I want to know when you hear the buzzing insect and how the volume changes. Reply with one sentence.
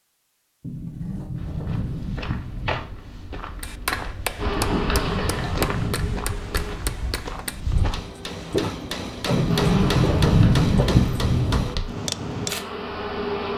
You can hear the buzzing insect briefly from 4.3 to 6.8 s; and from 9.4 to 13.5 s, getting quieter then louder.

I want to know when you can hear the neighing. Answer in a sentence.
The neighing can't be heard in this clip.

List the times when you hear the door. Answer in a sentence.
You can hear the door from 0.6 to 2.9 s, from 4.7 to 6.2 s and from 9.3 to 11.7 s.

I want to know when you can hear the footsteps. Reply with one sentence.
You can hear the footsteps from 1.4 to 12.7 s.